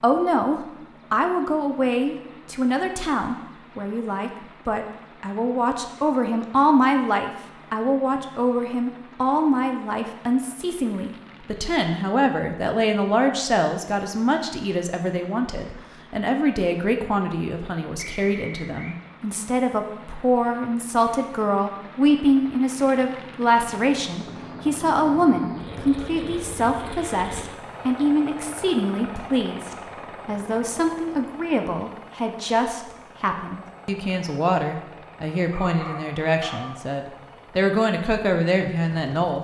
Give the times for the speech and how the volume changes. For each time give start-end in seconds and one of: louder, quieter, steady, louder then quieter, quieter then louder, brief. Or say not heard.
0.0-39.3 steady.